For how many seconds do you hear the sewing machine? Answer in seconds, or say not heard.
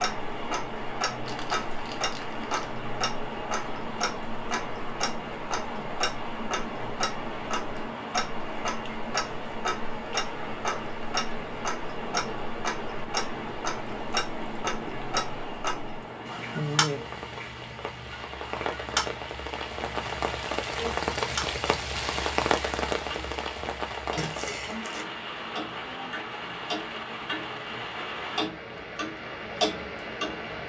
not heard.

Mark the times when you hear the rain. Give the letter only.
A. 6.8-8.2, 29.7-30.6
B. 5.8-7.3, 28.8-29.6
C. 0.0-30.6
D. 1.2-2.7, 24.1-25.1
C.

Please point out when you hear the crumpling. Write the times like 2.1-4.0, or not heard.
1.2-2.7, 24.1-25.1.